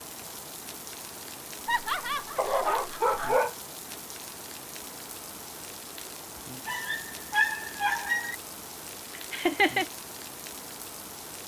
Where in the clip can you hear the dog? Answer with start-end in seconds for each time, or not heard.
2.4-3.5, 6.7-8.3.